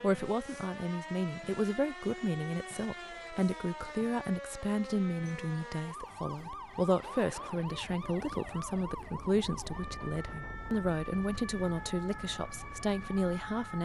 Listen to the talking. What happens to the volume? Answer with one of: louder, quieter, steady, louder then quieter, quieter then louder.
steady.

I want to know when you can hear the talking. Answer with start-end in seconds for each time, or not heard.
0.0-13.8.